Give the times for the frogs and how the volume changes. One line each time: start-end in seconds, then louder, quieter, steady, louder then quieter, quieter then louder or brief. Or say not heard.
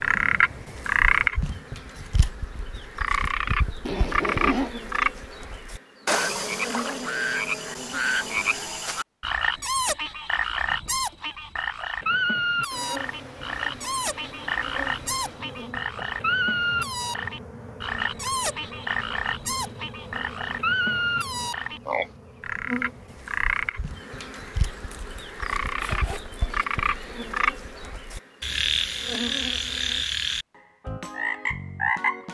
0.0-32.2 steady.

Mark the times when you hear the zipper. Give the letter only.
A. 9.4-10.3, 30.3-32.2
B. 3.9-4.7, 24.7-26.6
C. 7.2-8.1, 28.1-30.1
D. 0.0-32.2
B.